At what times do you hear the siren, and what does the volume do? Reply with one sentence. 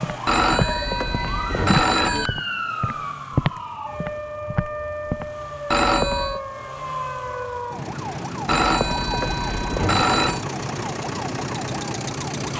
The siren can be heard from 0.0 to 12.5 s, at a steady volume.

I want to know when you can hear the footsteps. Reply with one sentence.
You can hear the footsteps from 0.0 to 5.2 s.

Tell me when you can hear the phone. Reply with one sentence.
The phone can be heard from 0.2 to 2.3 s, from 5.7 to 6.4 s and from 8.4 to 10.4 s.